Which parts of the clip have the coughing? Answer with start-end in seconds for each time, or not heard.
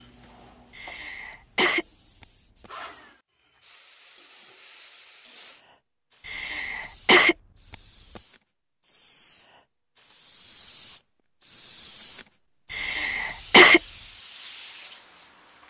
0.8-1.9, 6.2-7.3, 12.7-13.8.